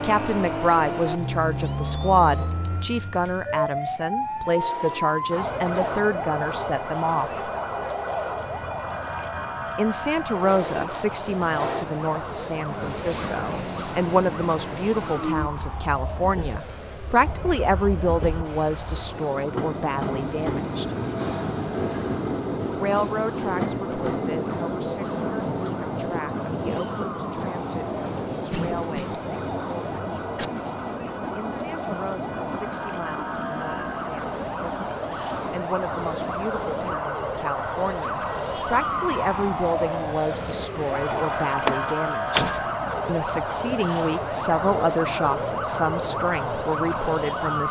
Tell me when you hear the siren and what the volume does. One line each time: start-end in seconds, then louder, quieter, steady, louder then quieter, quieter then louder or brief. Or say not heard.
0.0-47.6 quieter then louder.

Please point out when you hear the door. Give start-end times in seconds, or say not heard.
41.6-42.8.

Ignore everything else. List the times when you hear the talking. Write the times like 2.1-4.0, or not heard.
0.0-7.5, 9.8-20.9, 22.8-30.2, 31.4-47.6.